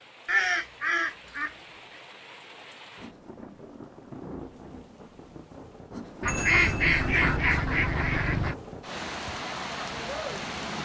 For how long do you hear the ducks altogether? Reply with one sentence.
The ducks can be heard for 4 seconds in total.